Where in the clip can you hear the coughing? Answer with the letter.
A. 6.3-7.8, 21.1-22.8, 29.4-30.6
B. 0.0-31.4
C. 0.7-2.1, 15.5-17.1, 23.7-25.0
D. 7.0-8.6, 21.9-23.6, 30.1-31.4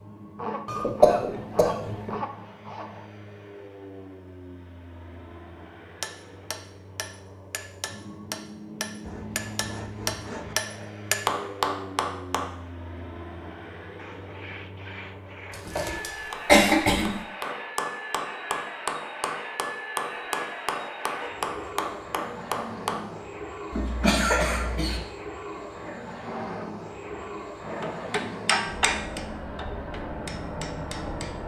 C.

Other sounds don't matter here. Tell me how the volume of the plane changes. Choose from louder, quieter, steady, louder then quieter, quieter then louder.
louder.